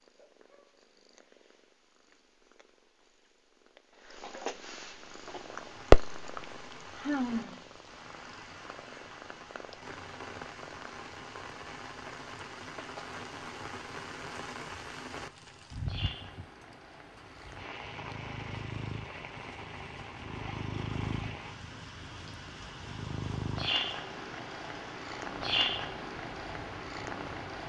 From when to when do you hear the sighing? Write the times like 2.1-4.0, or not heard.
7.0-7.6.